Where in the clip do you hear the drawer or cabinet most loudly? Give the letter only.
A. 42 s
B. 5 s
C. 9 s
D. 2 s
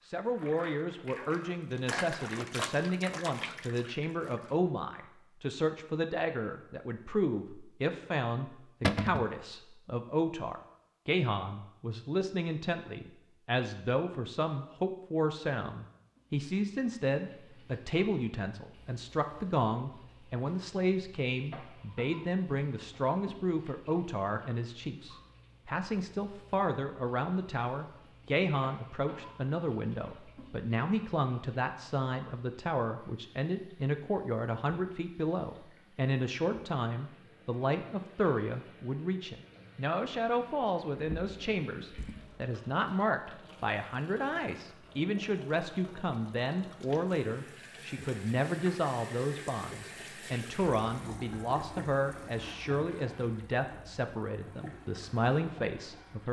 C.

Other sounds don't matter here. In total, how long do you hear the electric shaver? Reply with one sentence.
The electric shaver can't be heard in this clip.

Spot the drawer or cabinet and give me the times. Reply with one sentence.
The drawer or cabinet can be heard from 8.8 to 9.3 s and from 41.0 to 42.5 s.